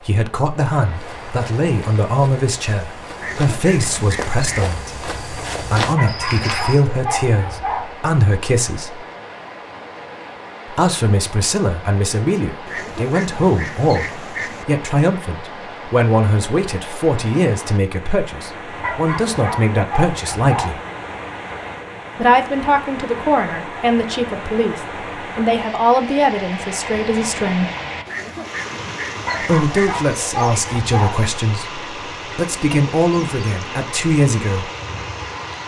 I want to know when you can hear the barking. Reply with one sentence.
The barking can be heard from 6.0 to 8.0 s, from 18.8 to 20.8 s and from 29.2 to 31.2 s.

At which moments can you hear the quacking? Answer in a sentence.
You can hear the quacking from 3.1 to 4.8 s, from 12.7 to 14.7 s and from 28.1 to 30.1 s.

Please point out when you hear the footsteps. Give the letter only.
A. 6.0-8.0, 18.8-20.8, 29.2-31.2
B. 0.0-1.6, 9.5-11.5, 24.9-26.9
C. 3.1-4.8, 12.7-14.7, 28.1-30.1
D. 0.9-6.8
D.